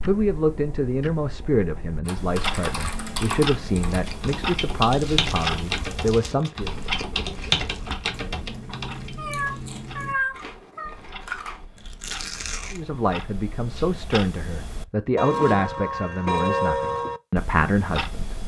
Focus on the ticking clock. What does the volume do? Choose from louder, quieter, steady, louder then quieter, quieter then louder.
quieter then louder.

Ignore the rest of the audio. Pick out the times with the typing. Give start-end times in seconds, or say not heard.
2.0-9.1.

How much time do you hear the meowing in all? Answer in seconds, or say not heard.
2 s.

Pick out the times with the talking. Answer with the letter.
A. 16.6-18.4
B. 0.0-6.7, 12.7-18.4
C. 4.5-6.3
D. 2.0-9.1
B.